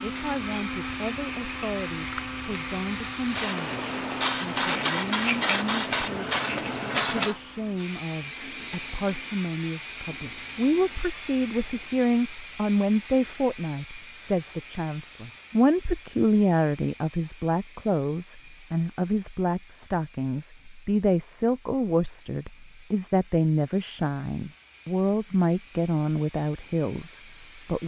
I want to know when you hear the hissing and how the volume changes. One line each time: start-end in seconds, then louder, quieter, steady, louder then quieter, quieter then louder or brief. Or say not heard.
0.1-27.8 quieter.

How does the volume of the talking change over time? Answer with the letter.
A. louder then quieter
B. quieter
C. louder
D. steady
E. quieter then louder
C.